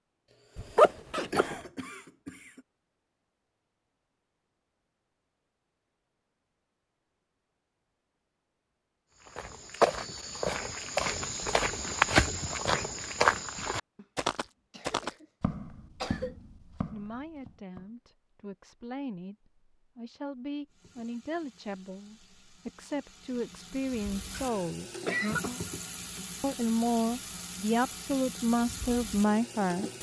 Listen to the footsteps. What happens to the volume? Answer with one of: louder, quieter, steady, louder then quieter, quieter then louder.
quieter.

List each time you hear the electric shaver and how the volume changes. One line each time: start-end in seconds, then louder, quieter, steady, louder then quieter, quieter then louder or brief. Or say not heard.
not heard.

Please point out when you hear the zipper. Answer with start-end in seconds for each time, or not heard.
0.6-1.6.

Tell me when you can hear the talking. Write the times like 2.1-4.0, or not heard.
16.9-25.1, 26.4-29.9.